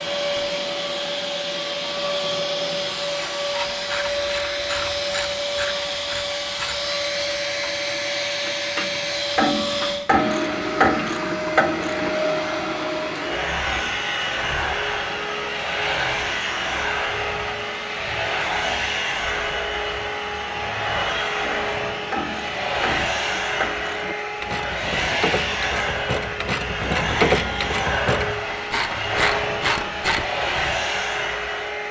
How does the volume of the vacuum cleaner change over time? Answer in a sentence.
The loudness of the vacuum cleaner stays about the same.